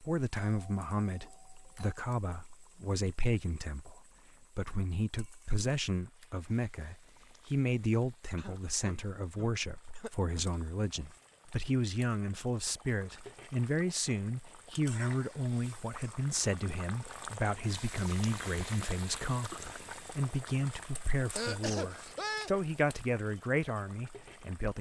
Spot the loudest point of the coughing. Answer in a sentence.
The loudest moment of the coughing is at 22 seconds.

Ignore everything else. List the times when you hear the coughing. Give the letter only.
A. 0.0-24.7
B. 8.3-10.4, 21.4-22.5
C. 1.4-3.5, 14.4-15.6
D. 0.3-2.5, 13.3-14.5
B.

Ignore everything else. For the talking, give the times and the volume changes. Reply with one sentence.
You can hear the talking from 0.0 to 24.7 s, at a steady volume.